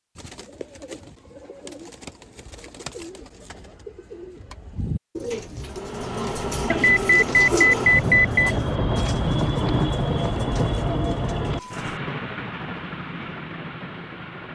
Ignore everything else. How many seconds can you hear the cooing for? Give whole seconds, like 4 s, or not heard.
12 s.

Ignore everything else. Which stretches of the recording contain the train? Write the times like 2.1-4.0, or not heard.
5.6-14.5.